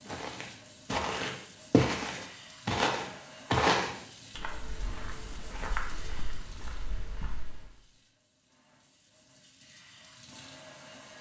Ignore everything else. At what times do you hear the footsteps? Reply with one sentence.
The footsteps can be heard from 0.1 to 7.8 s.